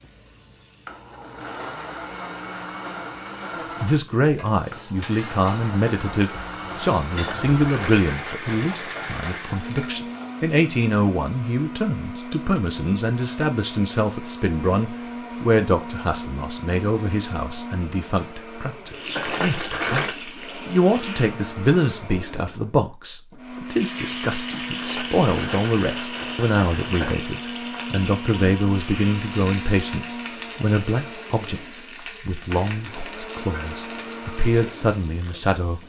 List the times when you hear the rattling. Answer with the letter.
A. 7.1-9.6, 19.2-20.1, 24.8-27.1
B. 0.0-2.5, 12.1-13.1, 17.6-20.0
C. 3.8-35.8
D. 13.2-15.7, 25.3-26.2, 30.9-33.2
A.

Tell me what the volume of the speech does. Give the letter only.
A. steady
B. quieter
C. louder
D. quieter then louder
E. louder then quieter
A.